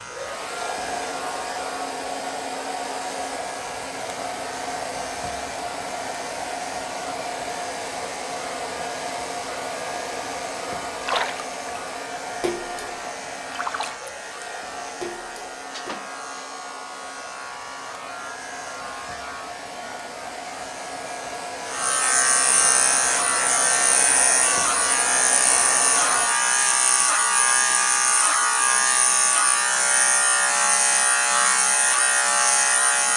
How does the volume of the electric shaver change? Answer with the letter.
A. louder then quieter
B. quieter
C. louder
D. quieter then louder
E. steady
C.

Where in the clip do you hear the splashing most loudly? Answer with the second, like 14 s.
11 s.